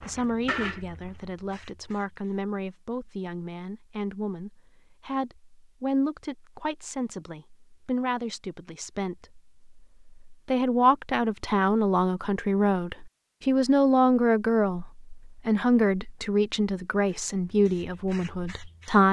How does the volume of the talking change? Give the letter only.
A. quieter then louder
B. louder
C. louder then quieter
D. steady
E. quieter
B.